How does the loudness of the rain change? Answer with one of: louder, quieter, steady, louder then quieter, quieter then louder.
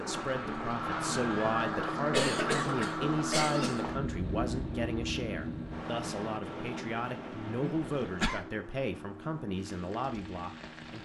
quieter.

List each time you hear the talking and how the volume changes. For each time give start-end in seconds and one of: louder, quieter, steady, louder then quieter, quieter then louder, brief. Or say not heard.
0.0-10.9 steady.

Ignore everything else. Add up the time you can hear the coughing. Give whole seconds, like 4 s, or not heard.
3 s.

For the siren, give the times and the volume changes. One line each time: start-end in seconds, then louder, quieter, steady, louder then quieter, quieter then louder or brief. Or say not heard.
not heard.